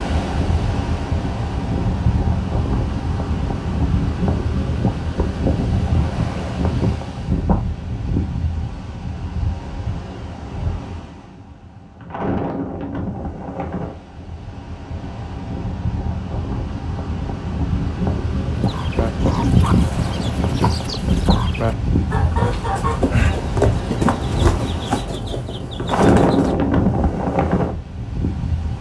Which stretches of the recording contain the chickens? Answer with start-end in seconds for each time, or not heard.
18.6-26.6.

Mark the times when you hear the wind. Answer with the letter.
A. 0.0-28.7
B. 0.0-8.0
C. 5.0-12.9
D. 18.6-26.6
A.